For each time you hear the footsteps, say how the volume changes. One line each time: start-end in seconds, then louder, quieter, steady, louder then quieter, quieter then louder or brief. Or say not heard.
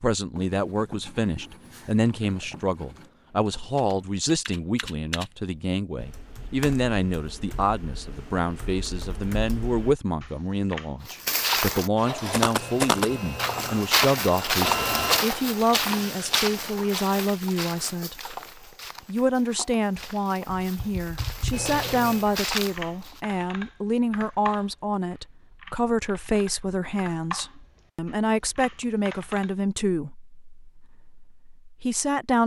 11.1-23.2 quieter then louder.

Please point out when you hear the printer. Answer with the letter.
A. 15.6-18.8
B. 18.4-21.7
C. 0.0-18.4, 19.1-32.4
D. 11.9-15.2
D.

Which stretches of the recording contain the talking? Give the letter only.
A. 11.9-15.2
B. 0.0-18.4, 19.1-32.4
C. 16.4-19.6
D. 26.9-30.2
B.